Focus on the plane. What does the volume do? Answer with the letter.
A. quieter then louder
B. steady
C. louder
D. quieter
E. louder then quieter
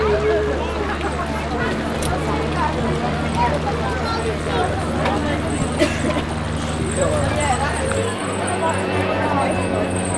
B.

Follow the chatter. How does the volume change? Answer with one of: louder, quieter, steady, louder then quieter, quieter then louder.
steady.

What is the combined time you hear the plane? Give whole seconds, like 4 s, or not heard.
10 s.